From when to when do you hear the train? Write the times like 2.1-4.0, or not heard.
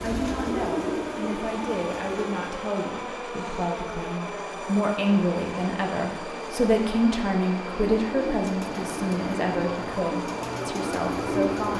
0.0-11.7.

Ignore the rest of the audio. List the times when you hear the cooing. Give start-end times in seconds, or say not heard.
0.0-2.5, 7.8-11.7.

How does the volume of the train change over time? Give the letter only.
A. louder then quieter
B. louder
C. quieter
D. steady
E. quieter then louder
D.